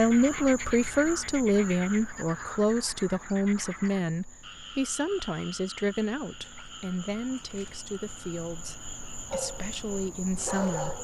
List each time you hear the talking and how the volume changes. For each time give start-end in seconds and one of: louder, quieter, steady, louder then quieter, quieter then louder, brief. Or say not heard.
0.0-10.9 quieter.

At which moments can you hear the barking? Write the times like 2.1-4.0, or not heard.
9.3-10.9.